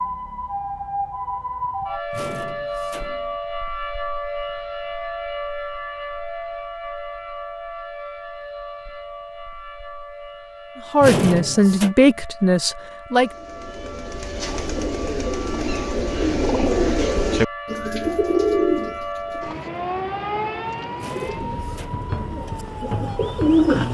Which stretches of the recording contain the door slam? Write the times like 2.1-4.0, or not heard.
2.1-3.4, 11.0-11.9, 20.9-22.1.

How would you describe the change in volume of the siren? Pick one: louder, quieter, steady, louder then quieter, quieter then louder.
quieter then louder.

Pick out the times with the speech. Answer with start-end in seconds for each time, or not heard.
10.9-13.3.